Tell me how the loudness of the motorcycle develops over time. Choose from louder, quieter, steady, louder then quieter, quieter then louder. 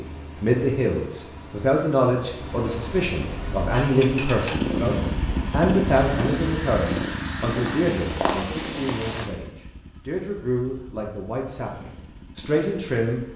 quieter.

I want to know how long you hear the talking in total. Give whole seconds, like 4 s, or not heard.
13 s.